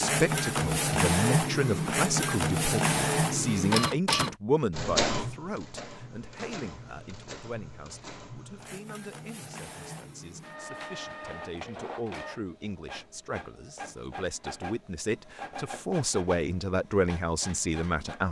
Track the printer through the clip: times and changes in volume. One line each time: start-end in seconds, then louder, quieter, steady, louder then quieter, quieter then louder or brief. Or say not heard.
0.0-18.2 quieter.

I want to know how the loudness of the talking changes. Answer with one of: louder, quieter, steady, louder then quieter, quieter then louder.
quieter then louder.